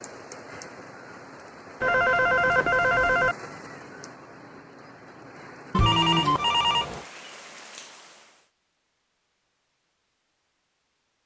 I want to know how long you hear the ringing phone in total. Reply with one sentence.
You can hear the ringing phone for 3 seconds altogether.